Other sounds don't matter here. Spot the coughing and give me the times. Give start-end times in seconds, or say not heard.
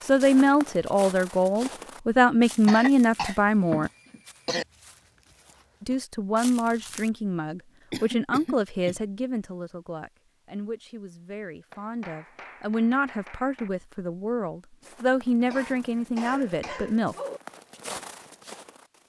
2.6-4.7, 7.9-9.0, 15.4-17.4.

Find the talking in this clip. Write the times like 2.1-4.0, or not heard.
0.1-3.9, 5.8-17.1.